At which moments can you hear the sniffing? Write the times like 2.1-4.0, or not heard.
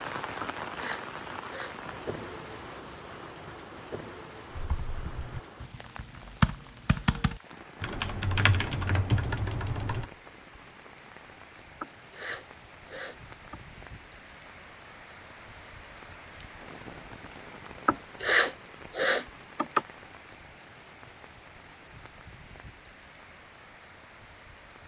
0.4-1.8, 11.8-13.6, 17.9-19.9.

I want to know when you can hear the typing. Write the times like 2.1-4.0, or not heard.
4.5-10.1.